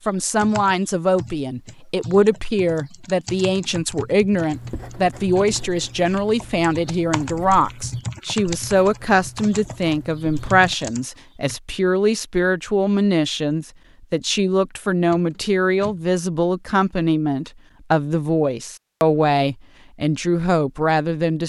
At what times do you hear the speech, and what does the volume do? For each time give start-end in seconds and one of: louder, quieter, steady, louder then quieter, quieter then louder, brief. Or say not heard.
0.1-21.4 steady.